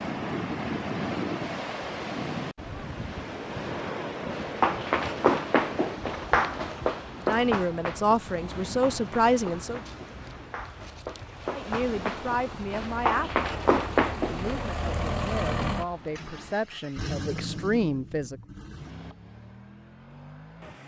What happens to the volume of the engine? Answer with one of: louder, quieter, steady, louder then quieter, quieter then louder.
louder then quieter.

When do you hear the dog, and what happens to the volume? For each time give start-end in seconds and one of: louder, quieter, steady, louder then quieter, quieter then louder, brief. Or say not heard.
not heard.